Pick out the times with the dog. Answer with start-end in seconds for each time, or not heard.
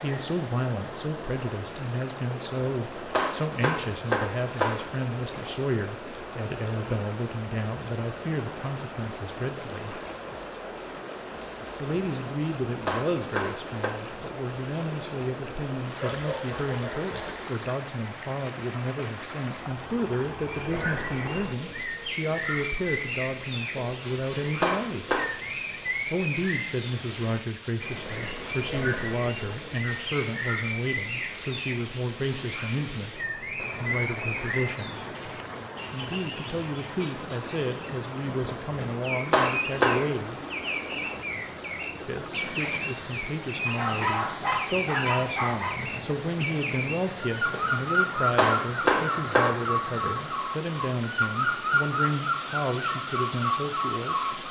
15.9-17.5, 43.6-45.8.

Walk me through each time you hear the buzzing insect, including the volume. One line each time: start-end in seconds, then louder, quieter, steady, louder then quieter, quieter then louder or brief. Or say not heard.
not heard.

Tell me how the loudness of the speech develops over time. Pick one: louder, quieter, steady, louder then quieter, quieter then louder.
steady.